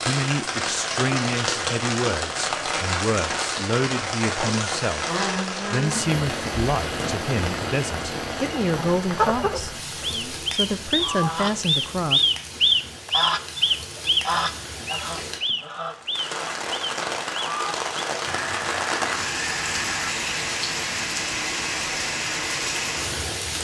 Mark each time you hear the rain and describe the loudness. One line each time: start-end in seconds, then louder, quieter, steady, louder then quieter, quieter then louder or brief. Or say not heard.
0.0-23.5 quieter then louder.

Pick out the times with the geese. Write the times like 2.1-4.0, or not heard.
8.8-20.1.